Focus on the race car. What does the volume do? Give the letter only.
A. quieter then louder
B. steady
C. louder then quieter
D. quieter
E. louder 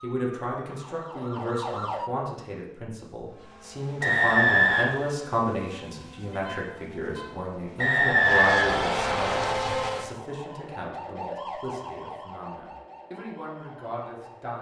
E.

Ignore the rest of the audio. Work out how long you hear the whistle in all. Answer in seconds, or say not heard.
3 s.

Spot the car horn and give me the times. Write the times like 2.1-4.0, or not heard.
6.3-7.3.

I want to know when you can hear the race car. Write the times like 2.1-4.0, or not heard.
3.2-10.2.